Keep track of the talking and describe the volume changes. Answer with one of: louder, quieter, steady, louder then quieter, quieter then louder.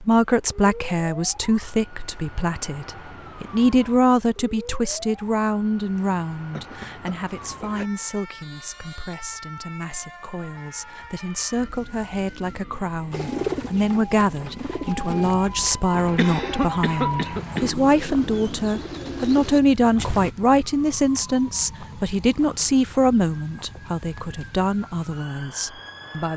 quieter then louder.